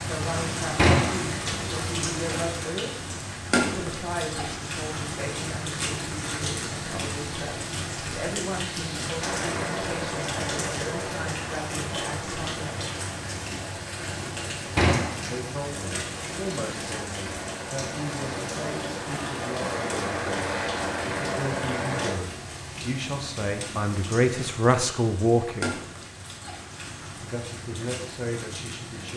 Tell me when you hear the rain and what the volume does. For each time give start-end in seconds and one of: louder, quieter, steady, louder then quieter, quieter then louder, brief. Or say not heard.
0.0-29.1 quieter.